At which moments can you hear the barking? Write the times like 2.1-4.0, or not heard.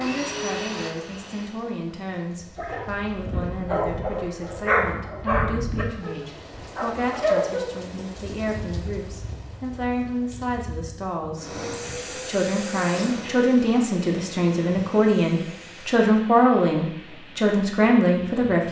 2.5-7.7.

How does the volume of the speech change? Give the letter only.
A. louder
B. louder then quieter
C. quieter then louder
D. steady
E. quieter
A.